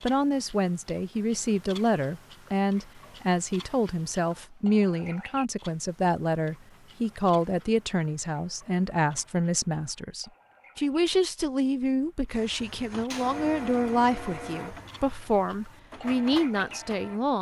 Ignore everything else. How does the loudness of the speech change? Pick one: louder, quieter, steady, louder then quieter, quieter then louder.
steady.